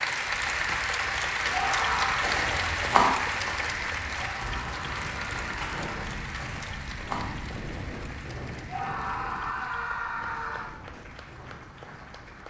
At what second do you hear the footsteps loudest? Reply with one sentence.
The loudest moment of the footsteps is at 3 seconds.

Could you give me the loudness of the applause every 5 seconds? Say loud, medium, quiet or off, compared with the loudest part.
loud, medium, quiet.